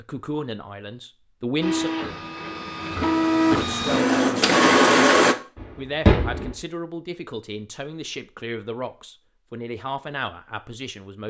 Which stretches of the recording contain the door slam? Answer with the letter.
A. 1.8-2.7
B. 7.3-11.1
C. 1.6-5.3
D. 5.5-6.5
D.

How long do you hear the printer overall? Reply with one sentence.
The printer can be heard for 4 seconds in total.